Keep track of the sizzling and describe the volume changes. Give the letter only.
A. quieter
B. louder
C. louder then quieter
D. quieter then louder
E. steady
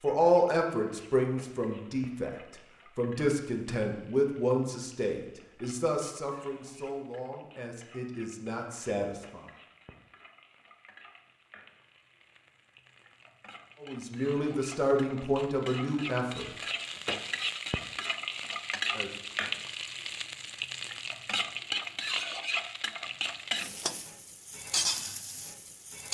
B.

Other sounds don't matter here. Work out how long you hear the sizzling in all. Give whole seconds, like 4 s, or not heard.
26 s.